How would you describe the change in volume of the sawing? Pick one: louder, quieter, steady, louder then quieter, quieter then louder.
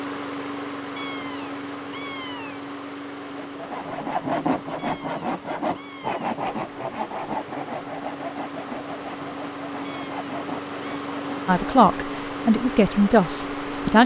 quieter.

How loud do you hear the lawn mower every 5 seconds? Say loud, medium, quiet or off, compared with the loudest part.
loud, medium, loud.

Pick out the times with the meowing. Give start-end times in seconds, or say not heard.
0.9-2.6, 4.8-6.2, 9.8-11.1.